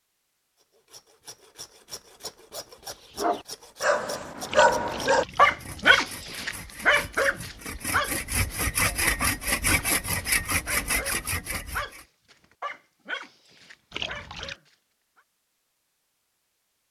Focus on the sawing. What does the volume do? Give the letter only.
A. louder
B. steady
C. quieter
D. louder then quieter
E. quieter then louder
A.